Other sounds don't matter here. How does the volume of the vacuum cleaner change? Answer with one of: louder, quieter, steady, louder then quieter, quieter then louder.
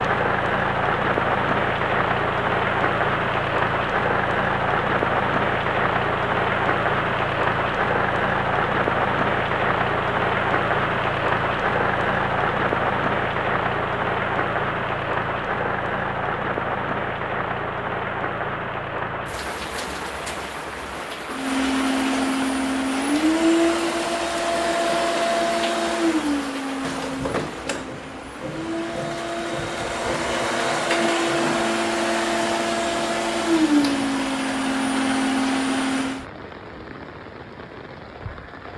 quieter then louder.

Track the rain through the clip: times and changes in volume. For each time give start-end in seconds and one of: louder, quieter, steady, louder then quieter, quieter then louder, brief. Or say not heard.
0.0-38.7 quieter.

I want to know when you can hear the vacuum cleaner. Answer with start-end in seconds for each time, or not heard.
21.3-36.2.